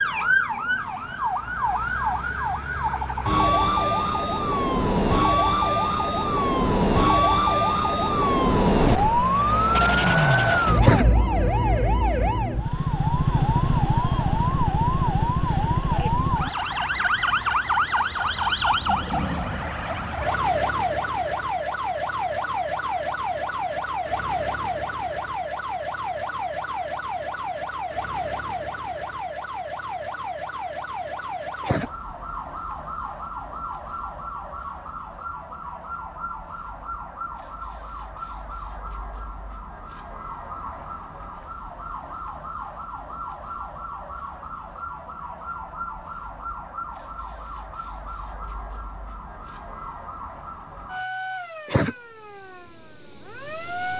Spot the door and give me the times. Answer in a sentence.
You can't hear the door here.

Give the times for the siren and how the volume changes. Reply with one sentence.
The siren can be heard from 0.0 to 53.9 s, getting quieter.